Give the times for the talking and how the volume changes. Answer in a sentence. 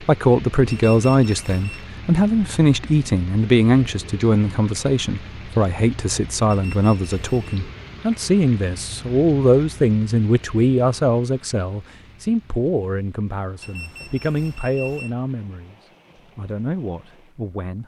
You can hear the talking from 0.0 to 15.8 s, getting quieter; and briefly from 16.4 to 17.8 s.